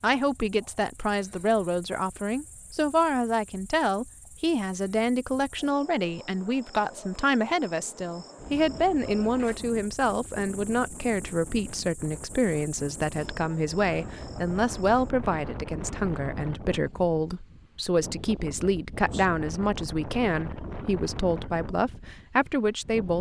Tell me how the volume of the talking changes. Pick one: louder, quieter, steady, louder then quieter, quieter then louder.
steady.